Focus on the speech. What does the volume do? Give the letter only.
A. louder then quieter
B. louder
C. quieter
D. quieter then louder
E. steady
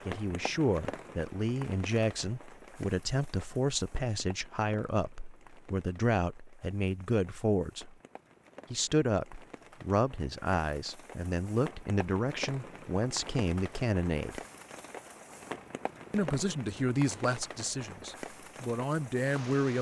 E.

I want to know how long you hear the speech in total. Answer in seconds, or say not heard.
17 s.